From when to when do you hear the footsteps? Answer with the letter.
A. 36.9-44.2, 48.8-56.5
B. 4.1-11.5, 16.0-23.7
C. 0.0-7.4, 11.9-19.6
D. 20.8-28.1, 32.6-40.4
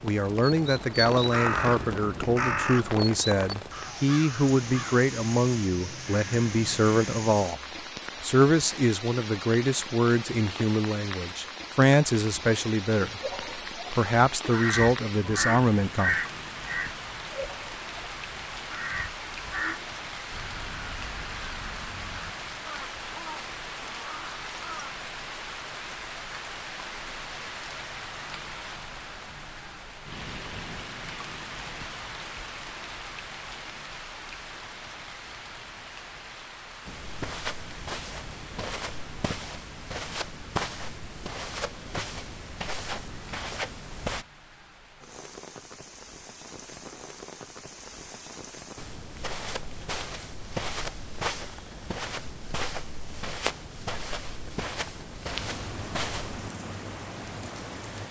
A.